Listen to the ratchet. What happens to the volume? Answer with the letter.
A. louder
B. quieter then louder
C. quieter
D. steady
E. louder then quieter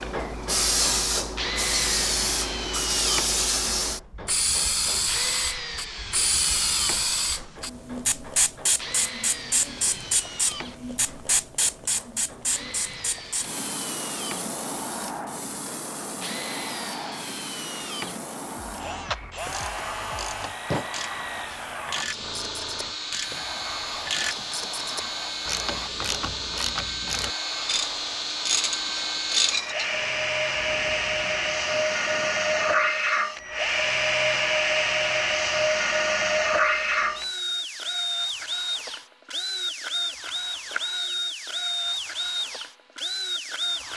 A.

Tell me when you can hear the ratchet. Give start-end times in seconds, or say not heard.
19.5-29.9.